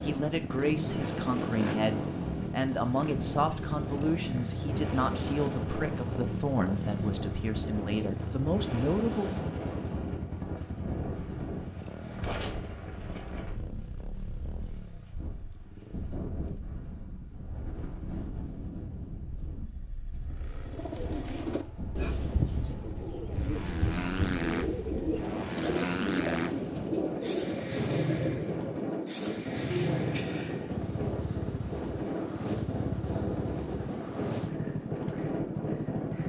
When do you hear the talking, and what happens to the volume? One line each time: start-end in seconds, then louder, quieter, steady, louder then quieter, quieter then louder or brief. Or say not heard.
0.0-9.5 steady.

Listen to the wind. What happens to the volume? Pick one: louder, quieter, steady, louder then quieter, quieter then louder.
quieter then louder.